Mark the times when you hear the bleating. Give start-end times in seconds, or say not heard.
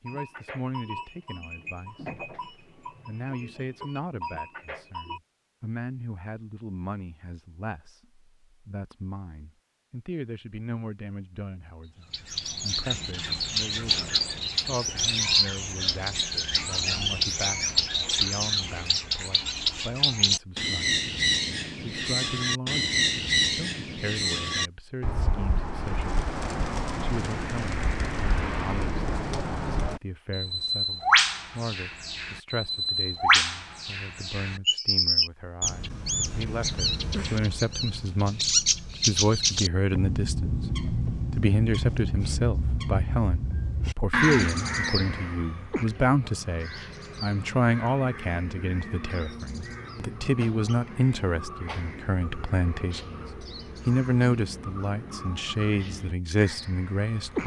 0.1-5.2.